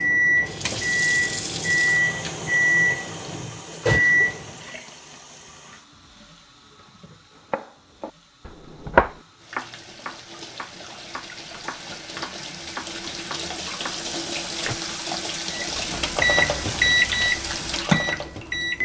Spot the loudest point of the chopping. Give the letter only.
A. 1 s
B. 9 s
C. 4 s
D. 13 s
B.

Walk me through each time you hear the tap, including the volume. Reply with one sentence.
The tap can be heard from 0.2 to 18.8 s, getting quieter then louder.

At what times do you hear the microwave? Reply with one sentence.
You can hear the microwave from 0.0 to 4.8 s and from 15.5 to 18.8 s.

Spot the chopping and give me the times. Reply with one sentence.
You can hear the chopping from 7.3 to 14.8 s.